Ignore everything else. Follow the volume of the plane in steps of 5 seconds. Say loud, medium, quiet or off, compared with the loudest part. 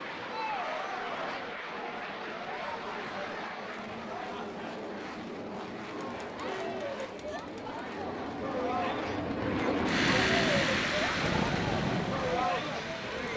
medium, medium, loud.